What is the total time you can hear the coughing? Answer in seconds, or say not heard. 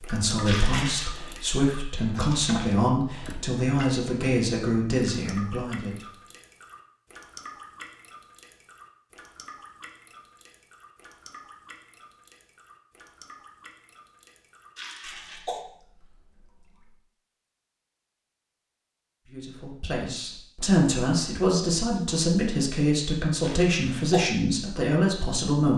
2 s.